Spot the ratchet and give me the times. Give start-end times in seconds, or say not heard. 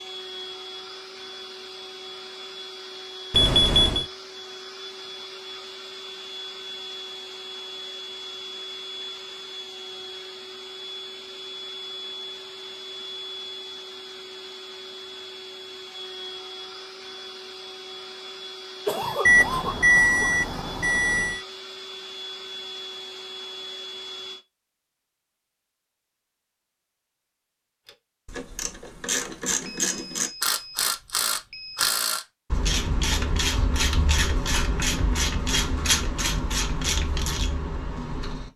27.9-38.5.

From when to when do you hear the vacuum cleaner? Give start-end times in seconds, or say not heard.
0.0-24.4.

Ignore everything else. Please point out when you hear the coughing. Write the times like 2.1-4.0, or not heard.
18.9-20.2.